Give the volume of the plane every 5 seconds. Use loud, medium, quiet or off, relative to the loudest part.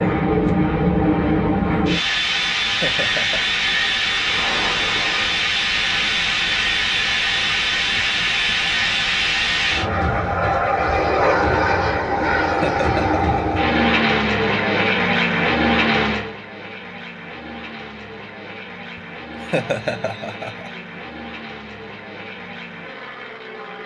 loud, loud, loud, medium, quiet.